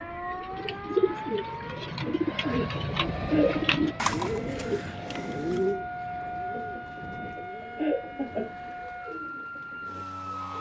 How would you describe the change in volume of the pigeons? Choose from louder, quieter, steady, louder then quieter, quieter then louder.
quieter.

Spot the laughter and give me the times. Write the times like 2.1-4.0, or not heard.
2.0-3.6, 6.5-8.6.